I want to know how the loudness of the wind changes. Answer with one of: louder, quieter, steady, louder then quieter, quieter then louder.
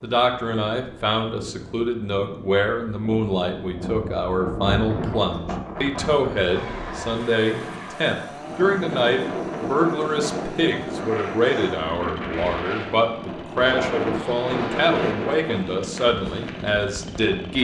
louder.